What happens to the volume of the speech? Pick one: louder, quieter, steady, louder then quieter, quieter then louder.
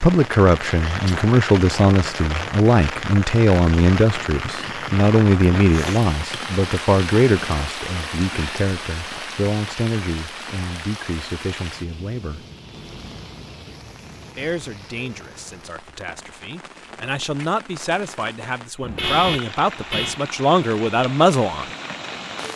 quieter then louder.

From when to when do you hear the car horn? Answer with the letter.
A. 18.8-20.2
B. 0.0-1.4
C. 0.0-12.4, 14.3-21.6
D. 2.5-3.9
A.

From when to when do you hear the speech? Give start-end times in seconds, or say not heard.
0.0-12.4, 14.3-21.6.